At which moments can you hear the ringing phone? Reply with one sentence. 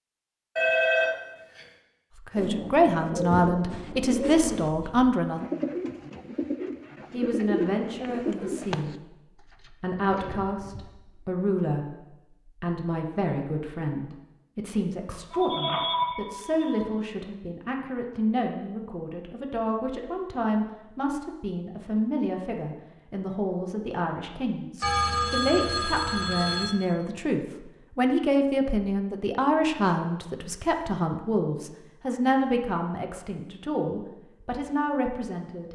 You can hear the ringing phone from 0.6 to 1.6 s, from 15.3 to 16.9 s and from 24.8 to 26.8 s.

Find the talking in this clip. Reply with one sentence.
You can hear the talking from 2.2 to 5.5 s and from 7.1 to 35.7 s.